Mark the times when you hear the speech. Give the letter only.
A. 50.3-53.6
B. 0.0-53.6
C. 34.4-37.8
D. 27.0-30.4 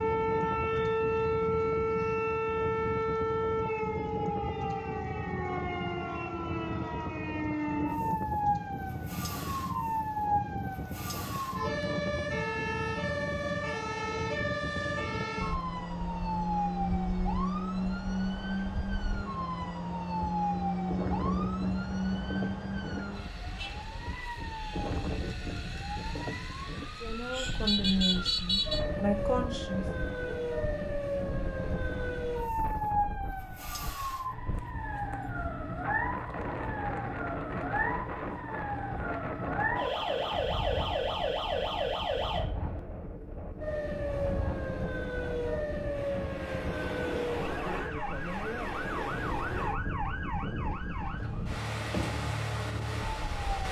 D.